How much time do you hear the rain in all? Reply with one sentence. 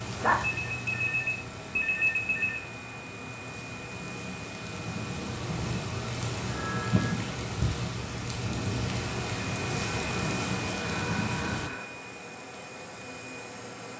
The rain can be heard for 12 seconds in total.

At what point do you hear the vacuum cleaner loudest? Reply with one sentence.
The volume of the vacuum cleaner peaks at 10 seconds.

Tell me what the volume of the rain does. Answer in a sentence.
The loudness of the rain goes up.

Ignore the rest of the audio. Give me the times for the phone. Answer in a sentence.
You can hear the phone from 0.2 to 2.6 s, from 6.4 to 7.2 s and from 10.8 to 11.9 s.